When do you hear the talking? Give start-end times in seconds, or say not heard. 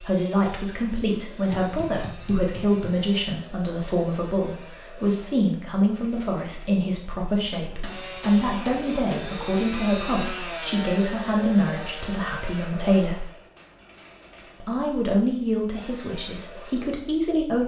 0.0-13.2, 14.6-17.6.